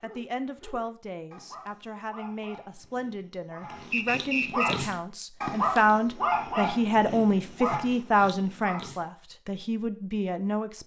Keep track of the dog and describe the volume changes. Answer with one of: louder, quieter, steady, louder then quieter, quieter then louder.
louder then quieter.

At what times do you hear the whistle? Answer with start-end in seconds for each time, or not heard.
3.9-4.8.